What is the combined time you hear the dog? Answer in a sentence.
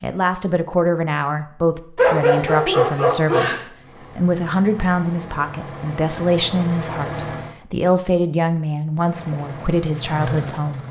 The dog can be heard for 2 seconds in total.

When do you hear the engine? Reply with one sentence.
You can hear the engine from 3.7 to 7.5 s and from 8.9 to 10.8 s.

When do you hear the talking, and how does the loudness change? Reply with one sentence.
You can hear the talking from 0.0 to 10.8 s, at a steady volume.